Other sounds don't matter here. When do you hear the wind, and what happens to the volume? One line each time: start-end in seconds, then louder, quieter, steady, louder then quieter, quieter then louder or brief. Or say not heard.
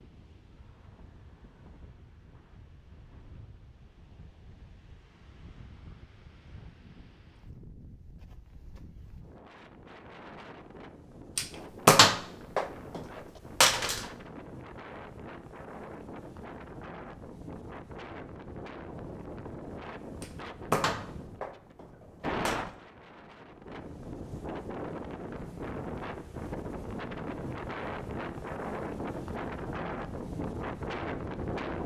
0.0-31.8 louder.